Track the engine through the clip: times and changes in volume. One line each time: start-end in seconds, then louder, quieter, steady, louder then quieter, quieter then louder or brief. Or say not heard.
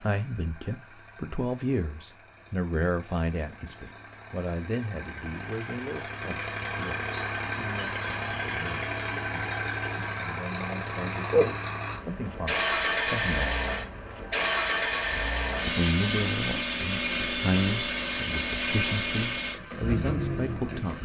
0.0-21.0 louder.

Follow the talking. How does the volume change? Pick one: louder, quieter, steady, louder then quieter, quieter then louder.
quieter then louder.